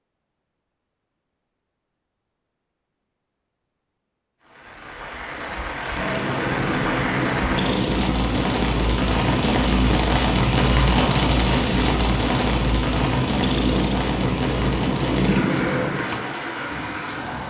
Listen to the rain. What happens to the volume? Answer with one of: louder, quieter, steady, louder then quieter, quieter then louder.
louder then quieter.